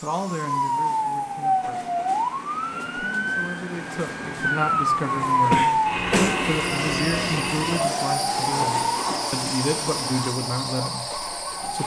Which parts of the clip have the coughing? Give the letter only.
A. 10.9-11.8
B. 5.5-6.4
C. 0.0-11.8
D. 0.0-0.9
B.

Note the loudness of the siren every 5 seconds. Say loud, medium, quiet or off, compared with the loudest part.
loud, loud, medium.